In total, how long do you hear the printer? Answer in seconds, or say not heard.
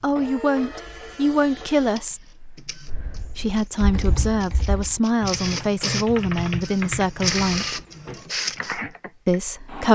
10 s.